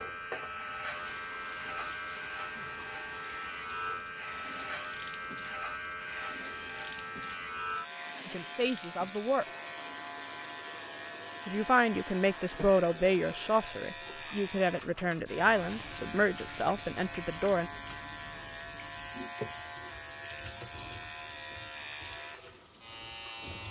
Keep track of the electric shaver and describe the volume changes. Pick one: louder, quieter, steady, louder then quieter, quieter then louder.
steady.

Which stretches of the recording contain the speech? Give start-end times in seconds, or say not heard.
8.2-9.4, 11.4-17.7.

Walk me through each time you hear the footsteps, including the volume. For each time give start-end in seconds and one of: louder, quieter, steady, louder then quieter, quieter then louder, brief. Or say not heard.
not heard.